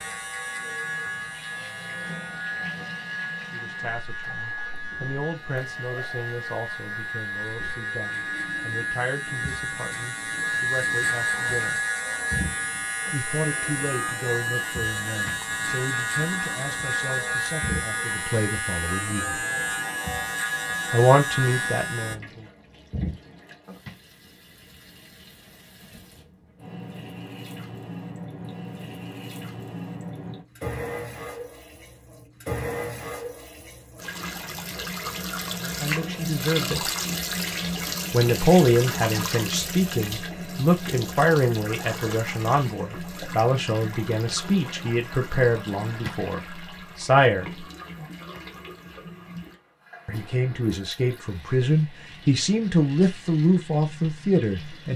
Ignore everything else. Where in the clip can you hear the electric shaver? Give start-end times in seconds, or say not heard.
0.0-22.1.